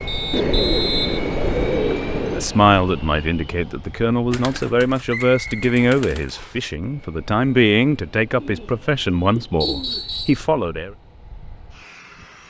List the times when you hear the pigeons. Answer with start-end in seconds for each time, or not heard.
0.3-2.5, 4.3-6.3, 8.3-10.1.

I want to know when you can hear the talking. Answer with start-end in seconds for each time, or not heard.
2.3-10.9.